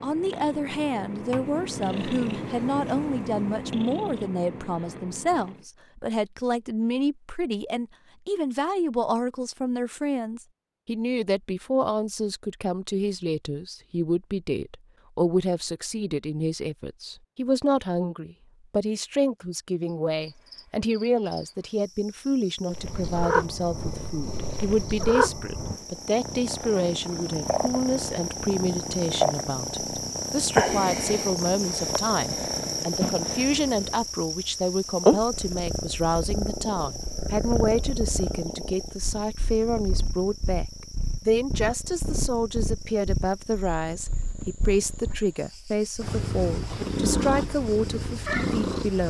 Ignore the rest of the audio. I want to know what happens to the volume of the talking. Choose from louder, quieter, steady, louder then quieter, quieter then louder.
steady.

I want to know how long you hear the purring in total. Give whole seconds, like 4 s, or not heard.
31 s.